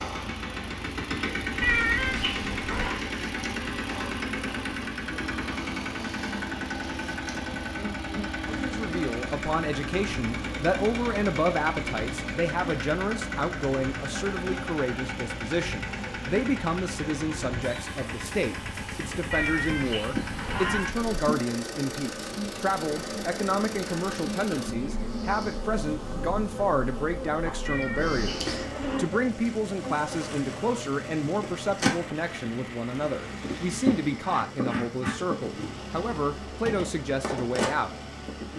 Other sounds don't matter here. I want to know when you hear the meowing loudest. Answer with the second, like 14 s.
2 s.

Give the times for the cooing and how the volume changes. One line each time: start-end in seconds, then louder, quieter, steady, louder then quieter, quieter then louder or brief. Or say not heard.
not heard.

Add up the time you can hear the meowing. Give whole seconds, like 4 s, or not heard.
5 s.